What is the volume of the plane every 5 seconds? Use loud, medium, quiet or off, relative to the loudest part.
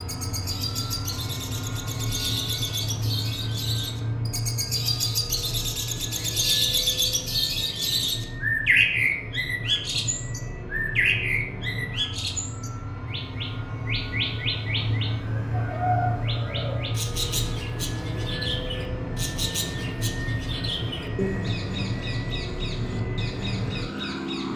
loud, medium, loud, loud, loud.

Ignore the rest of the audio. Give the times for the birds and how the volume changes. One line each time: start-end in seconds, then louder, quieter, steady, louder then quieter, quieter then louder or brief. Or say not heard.
0.0-24.5 louder then quieter.